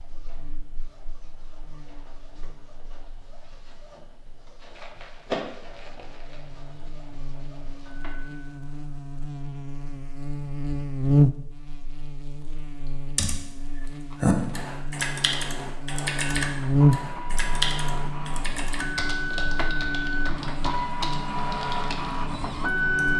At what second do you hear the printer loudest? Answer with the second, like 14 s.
23 s.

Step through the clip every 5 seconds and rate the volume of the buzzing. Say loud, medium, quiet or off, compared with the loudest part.
quiet, quiet, loud, loud, medium.